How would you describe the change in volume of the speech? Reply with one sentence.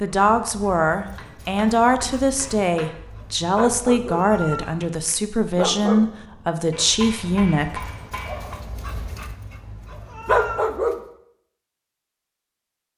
The volume of the speech stays about the same.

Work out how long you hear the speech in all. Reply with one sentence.
You can hear the speech for 8 seconds altogether.